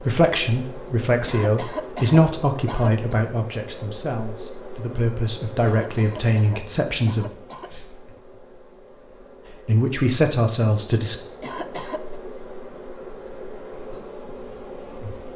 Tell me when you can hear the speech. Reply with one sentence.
The speech can be heard from 0.1 to 7.2 s and from 9.7 to 11.2 s.